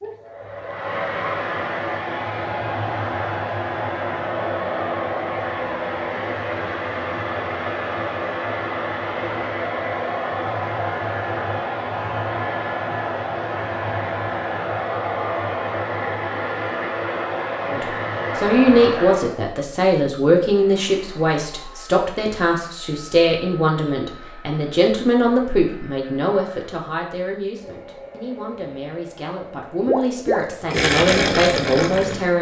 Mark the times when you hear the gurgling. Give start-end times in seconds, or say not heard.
29.9-32.2.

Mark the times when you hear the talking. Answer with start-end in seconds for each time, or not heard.
17.6-32.3.